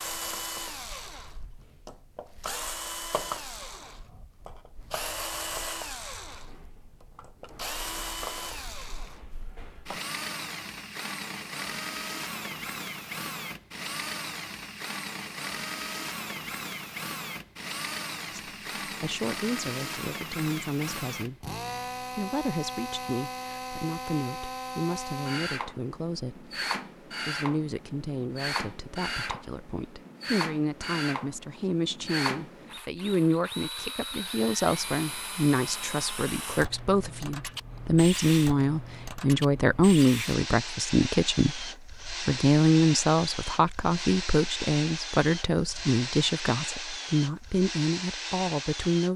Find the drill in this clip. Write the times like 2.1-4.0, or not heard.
0.0-49.1.